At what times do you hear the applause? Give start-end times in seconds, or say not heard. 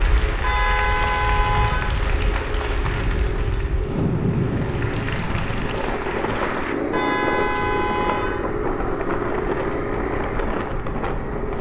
0.0-6.8.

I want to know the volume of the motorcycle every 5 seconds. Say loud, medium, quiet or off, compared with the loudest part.
medium, loud, loud.